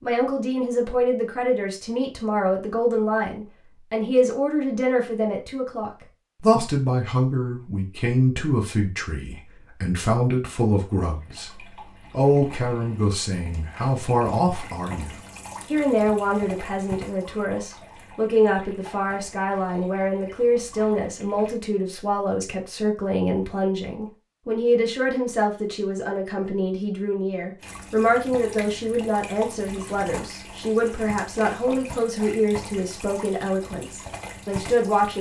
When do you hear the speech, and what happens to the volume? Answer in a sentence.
The speech can be heard from 0.0 to 11.5 s, at a steady volume; and from 12.1 to 35.1 s, at a steady volume.